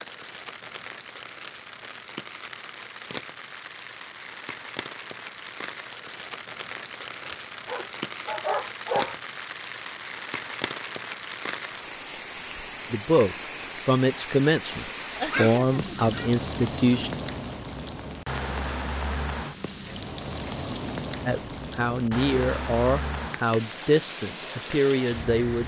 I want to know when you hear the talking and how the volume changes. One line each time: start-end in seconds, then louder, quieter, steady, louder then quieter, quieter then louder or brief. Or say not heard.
12.9-17.1 quieter then louder
21.2-25.6 steady.